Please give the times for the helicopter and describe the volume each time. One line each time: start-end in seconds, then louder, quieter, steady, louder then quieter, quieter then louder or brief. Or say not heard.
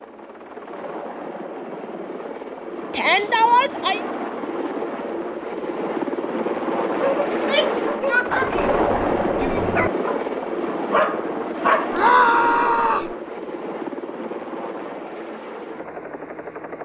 0.0-16.8 louder then quieter.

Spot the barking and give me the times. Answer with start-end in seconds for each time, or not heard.
7.0-11.8.